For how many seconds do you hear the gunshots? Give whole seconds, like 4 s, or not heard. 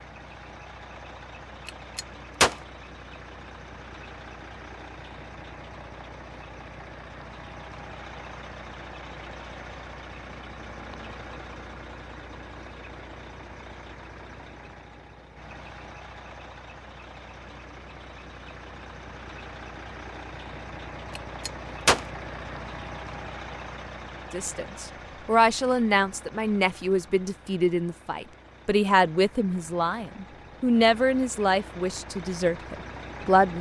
2 s.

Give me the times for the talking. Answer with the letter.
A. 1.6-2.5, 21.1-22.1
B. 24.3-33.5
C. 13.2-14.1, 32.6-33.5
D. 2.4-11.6
B.